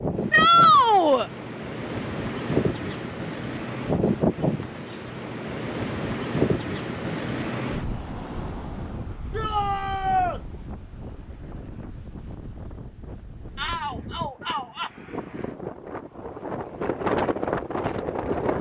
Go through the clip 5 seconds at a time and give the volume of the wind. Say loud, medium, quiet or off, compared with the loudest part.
loud, loud, quiet, loud.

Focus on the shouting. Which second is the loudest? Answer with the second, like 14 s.
1 s.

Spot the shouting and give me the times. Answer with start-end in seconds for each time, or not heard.
0.3-1.3, 9.3-10.4, 13.6-14.9.